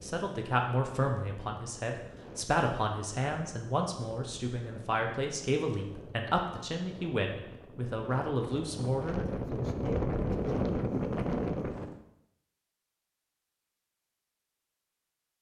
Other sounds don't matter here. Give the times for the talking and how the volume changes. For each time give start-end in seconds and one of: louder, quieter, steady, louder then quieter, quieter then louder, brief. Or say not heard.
0.0-9.2 steady.